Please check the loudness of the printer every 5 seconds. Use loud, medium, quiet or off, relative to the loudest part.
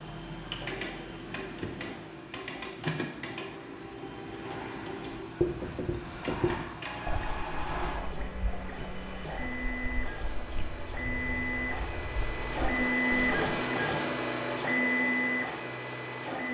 medium, medium, loud, loud.